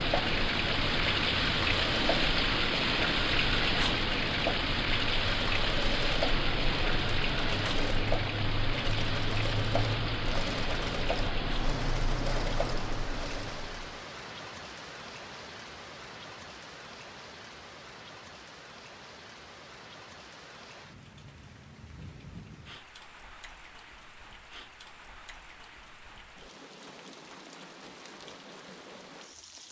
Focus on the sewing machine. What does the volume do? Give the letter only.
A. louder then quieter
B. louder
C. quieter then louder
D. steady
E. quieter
D.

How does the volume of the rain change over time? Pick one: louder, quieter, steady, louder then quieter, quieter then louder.
quieter.